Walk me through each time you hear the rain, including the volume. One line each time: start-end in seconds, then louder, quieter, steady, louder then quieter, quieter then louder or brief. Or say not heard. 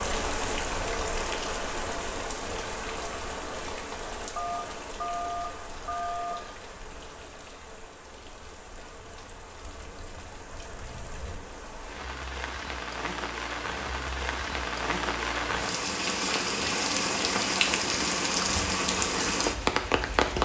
0.0-20.3 quieter then louder.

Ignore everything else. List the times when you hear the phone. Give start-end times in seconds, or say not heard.
4.3-6.3.